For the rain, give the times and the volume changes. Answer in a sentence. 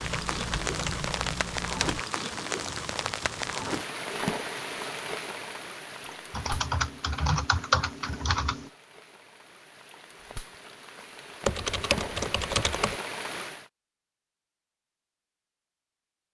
The rain can be heard from 0.0 to 13.7 s, getting quieter then louder.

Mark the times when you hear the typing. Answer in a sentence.
The typing can be heard from 0.0 to 2.0 s, from 6.0 to 8.7 s and from 11.4 to 13.0 s.